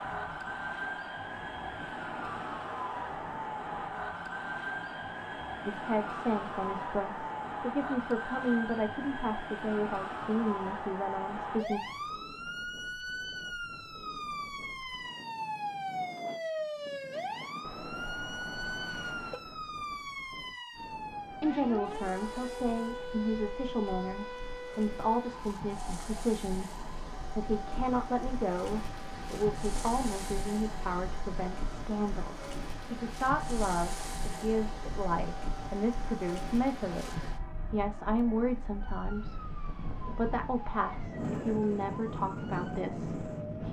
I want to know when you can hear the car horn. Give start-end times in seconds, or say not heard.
17.6-19.4.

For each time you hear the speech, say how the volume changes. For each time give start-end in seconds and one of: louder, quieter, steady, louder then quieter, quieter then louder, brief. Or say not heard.
5.7-11.8 steady
21.4-43.6 steady.